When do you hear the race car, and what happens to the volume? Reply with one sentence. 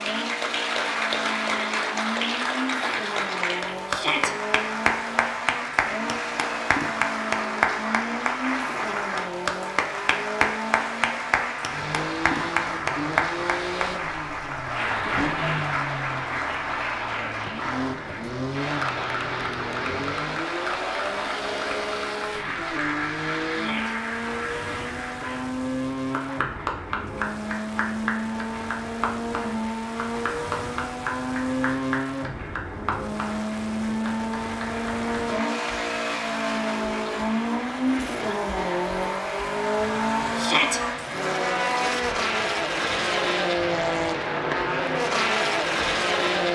You can hear the race car from 0.0 to 46.5 s, getting louder.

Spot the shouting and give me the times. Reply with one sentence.
The shouting can be heard from 3.9 to 4.3 s, from 23.5 to 23.9 s and from 40.4 to 40.8 s.